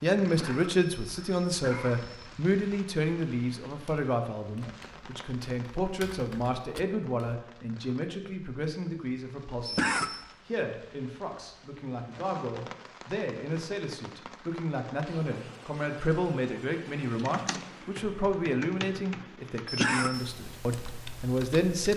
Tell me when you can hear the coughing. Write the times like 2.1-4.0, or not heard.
0.2-2.3, 9.7-10.2, 19.6-20.2.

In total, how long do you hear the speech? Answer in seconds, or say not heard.
22 s.